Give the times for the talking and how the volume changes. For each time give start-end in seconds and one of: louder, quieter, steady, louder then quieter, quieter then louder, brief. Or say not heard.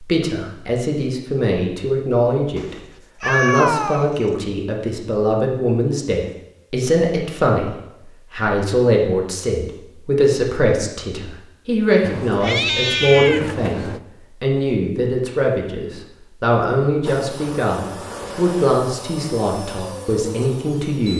0.0-21.1 steady.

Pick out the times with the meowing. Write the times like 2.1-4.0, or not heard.
2.5-4.0, 12.0-14.0.